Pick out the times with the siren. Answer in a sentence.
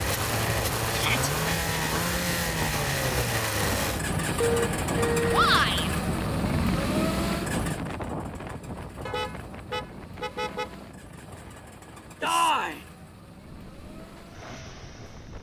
You can't hear the siren here.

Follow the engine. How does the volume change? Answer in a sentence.
The volume of the engine goes down.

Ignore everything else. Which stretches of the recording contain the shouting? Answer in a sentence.
The shouting can be heard from 0.9 to 1.3 s, from 5.3 to 5.9 s and from 12.2 to 12.8 s.